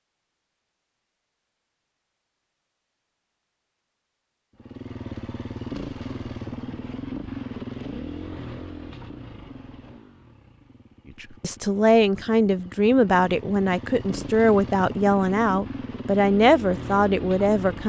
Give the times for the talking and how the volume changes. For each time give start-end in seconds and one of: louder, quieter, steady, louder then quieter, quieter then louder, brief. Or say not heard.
11.2-17.8 steady.